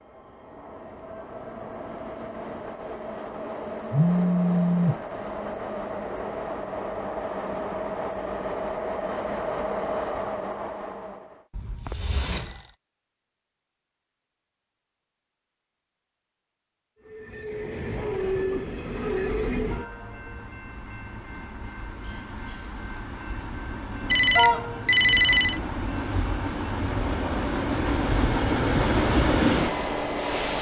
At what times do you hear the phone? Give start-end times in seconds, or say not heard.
3.9-5.0, 11.5-12.8, 24.1-25.6.